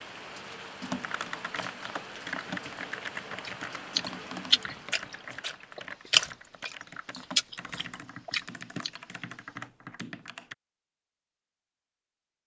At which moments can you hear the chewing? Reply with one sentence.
You can hear the chewing from 3.5 to 8.9 s.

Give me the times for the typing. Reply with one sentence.
The typing can be heard from 0.8 to 10.6 s.